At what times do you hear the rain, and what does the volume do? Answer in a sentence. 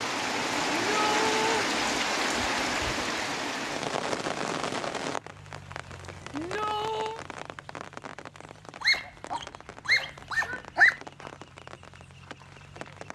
You can hear the rain from 0.0 to 13.1 s, getting quieter.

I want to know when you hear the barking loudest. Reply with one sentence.
The volume of the barking peaks at 11 seconds.